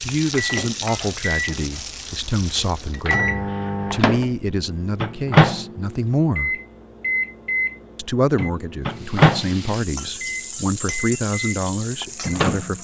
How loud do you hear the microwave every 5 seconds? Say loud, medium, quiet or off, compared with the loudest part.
medium, loud, medium.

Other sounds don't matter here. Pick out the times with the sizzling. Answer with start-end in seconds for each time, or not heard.
0.0-3.1, 8.8-12.8.